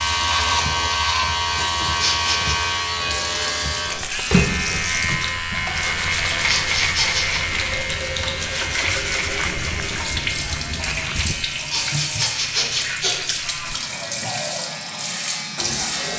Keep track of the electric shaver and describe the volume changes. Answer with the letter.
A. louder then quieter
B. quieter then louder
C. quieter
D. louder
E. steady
C.